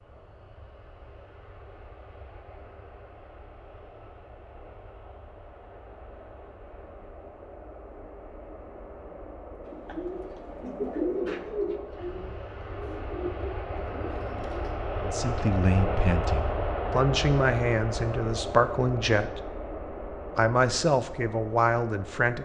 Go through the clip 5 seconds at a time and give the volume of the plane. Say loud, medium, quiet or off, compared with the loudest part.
quiet, quiet, medium, loud, medium.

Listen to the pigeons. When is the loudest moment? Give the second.
11 s.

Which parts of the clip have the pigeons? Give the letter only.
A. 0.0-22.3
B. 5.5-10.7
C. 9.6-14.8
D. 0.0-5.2
C.